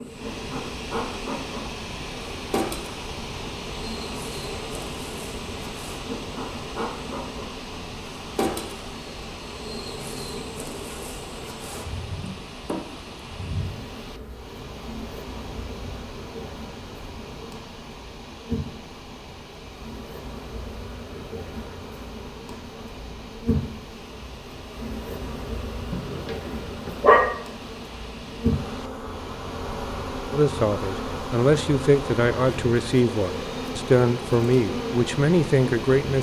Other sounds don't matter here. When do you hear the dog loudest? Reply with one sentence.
The volume of the dog peaks at 27 seconds.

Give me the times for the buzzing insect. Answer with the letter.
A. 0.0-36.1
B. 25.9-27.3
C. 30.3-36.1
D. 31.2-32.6
A.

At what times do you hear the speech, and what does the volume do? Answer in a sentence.
The speech can be heard from 30.3 to 36.1 s, at a steady volume.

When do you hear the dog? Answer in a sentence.
You can hear the dog from 25.9 to 27.3 s.